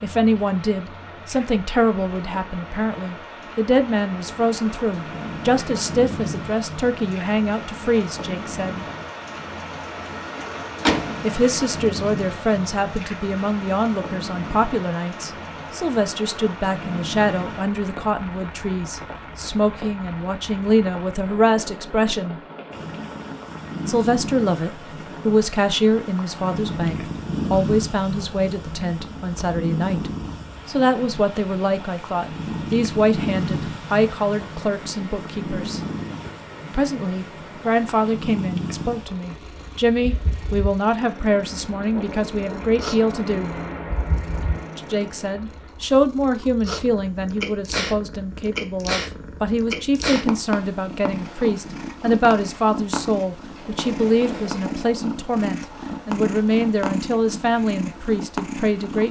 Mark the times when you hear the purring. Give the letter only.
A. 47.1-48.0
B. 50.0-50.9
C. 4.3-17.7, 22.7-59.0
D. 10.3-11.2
C.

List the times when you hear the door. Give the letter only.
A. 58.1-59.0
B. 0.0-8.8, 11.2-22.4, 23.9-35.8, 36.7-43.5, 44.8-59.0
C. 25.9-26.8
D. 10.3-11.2
D.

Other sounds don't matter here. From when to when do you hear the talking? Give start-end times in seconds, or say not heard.
0.0-8.8, 11.2-22.4, 23.9-35.8, 36.7-43.5, 44.8-59.0.